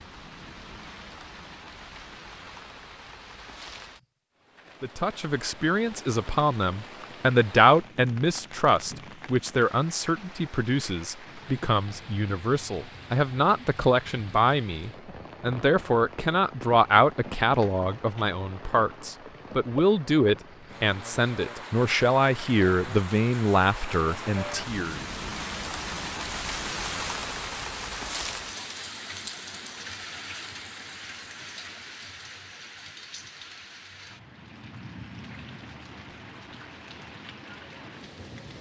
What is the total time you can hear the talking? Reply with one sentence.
The talking can be heard for 20 seconds in total.